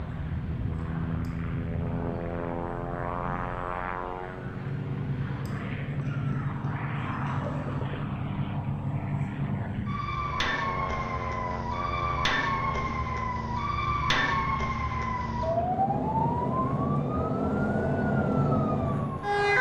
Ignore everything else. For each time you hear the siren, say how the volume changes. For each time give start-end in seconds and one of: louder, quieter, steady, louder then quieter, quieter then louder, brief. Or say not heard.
0.0-19.5 louder.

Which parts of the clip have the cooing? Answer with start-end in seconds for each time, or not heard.
not heard.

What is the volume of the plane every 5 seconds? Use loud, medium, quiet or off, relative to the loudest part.
loud, loud, medium, medium.